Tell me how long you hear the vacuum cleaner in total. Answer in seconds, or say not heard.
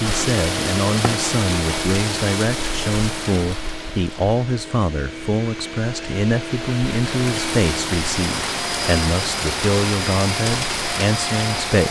12 s.